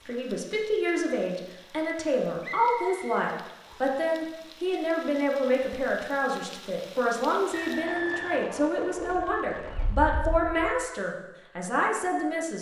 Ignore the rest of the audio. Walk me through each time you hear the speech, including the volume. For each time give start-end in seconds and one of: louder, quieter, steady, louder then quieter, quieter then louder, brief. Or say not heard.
0.1-12.5 steady.